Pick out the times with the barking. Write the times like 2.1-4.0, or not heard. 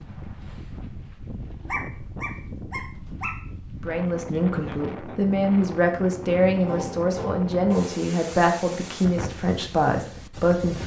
1.6-3.4, 6.5-8.1.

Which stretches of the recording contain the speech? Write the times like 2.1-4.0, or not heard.
3.9-10.8.